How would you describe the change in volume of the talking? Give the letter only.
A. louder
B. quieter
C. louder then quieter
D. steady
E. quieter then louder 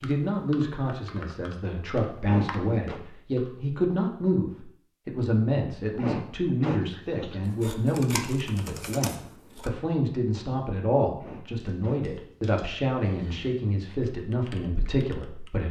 D.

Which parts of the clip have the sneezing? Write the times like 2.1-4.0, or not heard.
2.2-3.0, 6.0-7.2, 11.2-12.1.